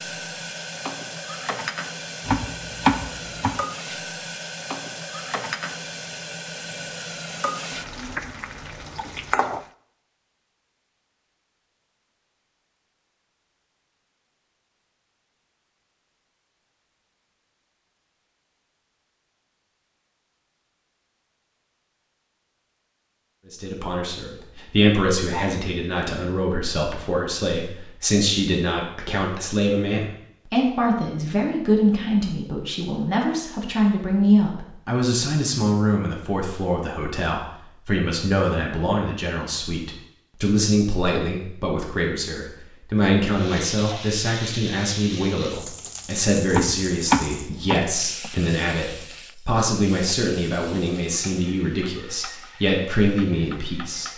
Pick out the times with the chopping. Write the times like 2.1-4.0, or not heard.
2.2-3.6, 46.5-47.9.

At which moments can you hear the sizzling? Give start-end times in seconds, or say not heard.
0.0-9.7, 43.3-54.1.